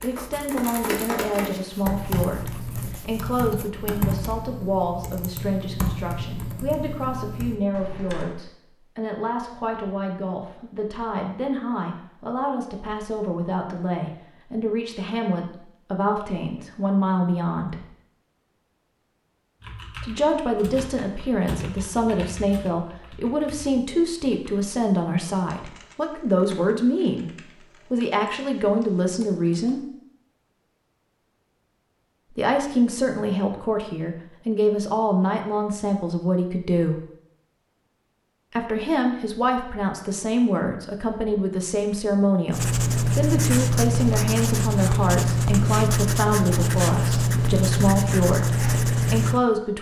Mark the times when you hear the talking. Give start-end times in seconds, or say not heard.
0.0-17.8, 19.9-29.8, 32.3-37.0, 38.5-49.7.